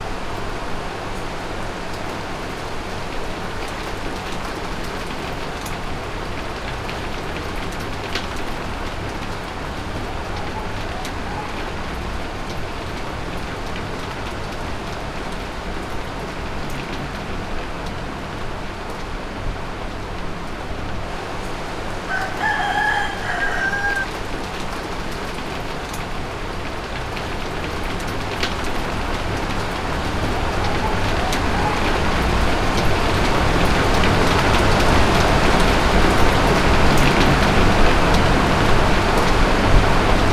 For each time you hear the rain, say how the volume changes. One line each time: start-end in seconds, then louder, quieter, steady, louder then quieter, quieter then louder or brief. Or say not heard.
0.0-40.2 louder.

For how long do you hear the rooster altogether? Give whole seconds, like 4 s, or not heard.
2 s.